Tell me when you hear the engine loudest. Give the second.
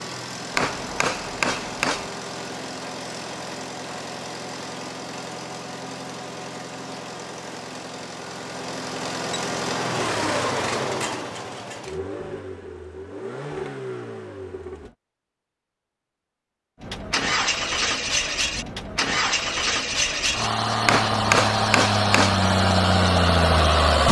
24 s.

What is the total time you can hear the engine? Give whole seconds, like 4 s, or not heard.
22 s.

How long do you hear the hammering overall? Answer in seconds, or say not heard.
3 s.